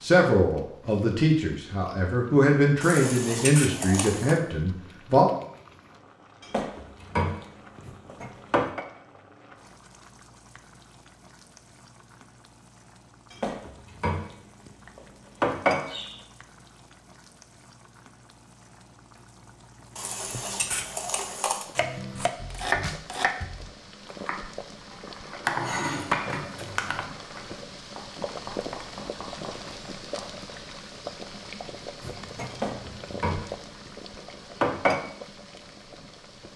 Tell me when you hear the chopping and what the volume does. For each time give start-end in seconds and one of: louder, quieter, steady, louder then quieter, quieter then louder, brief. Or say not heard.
21.8-30.3 quieter.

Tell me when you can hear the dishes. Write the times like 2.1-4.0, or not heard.
2.8-4.4, 6.4-8.8, 13.3-16.1, 19.9-21.6, 25.4-27.1, 32.5-35.0.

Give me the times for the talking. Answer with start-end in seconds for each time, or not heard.
0.0-5.3.